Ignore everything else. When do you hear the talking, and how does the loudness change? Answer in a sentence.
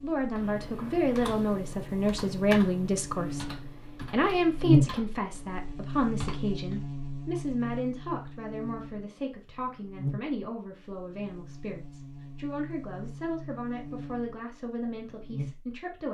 You can hear the talking from 0.0 to 16.0 s, getting quieter.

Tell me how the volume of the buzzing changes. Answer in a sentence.
The loudness of the buzzing goes up, then down.